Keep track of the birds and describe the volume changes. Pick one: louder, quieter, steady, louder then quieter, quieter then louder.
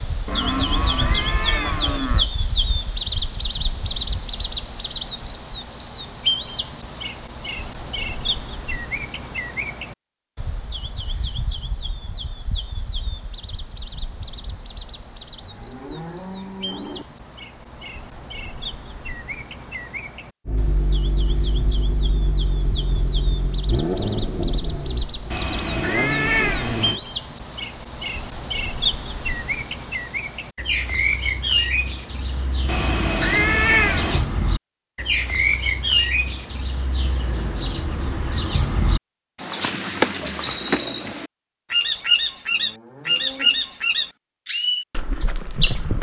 quieter then louder.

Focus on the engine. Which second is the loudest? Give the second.
24 s.